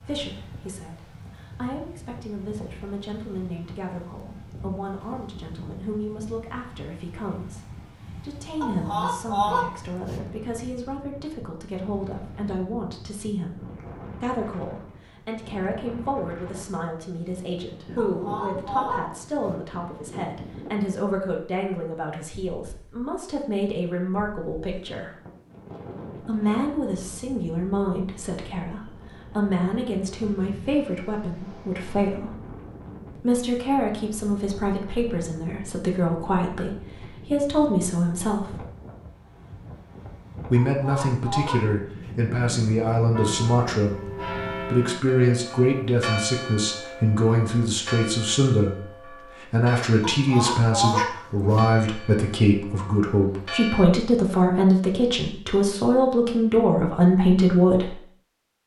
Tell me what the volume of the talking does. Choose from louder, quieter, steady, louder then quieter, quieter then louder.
louder.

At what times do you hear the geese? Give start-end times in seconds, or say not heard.
8.6-10.2, 17.9-19.6, 40.5-42.1, 50.0-51.6.